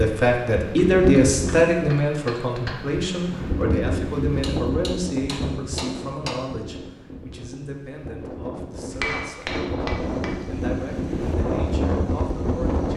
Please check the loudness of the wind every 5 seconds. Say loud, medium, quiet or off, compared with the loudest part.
loud, medium, loud.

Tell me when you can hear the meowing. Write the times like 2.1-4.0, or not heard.
not heard.